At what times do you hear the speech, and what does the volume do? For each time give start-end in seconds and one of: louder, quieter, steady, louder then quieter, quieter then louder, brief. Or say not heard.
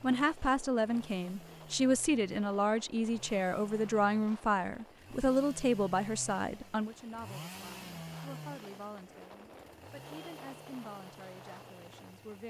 0.0-12.4 quieter.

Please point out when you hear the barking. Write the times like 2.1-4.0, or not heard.
not heard.